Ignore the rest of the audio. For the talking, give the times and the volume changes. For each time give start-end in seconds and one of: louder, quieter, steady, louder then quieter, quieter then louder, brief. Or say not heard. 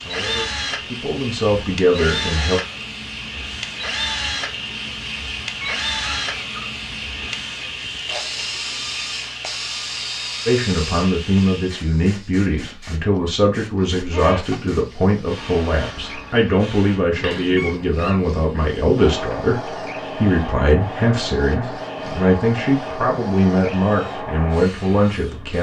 0.0-2.6 brief
10.4-25.5 steady.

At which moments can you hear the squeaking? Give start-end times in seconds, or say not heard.
5.6-7.0, 14.0-14.6, 17.6-18.3.